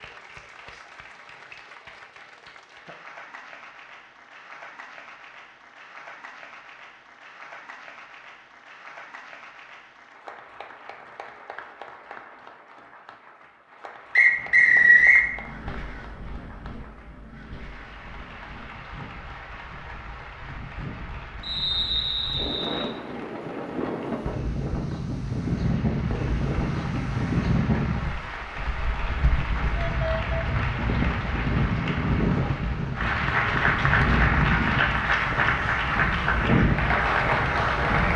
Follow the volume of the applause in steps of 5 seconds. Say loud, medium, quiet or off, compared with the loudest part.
quiet, quiet, quiet, quiet, quiet, quiet, loud, loud.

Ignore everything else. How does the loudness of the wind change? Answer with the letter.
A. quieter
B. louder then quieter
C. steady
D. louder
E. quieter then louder
D.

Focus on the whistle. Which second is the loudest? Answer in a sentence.
The volume of the whistle peaks at 15 seconds.